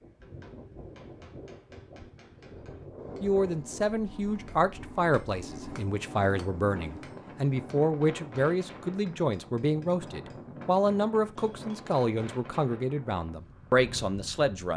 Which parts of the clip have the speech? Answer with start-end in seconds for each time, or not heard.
3.2-14.7.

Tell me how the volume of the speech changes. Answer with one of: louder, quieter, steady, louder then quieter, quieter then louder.
steady.